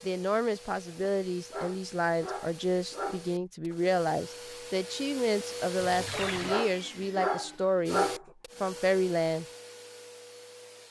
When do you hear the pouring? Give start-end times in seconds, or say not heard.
5.8-6.6.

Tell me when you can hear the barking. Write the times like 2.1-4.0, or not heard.
1.0-3.8, 6.0-8.2.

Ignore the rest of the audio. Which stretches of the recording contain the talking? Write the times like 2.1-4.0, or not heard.
0.0-9.4.